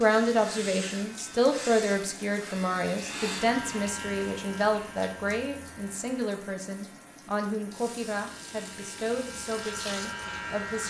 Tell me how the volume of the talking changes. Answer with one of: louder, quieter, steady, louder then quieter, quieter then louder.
quieter.